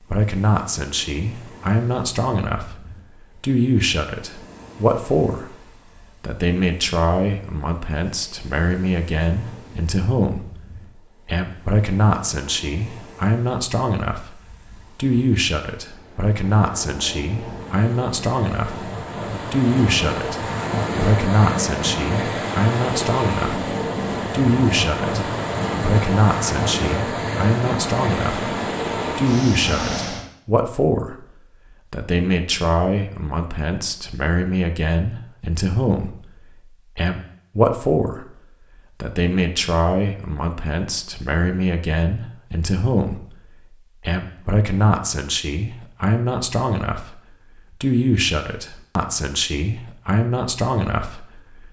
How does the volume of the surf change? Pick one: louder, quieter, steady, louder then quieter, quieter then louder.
louder.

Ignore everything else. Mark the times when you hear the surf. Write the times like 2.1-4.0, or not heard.
0.0-30.2.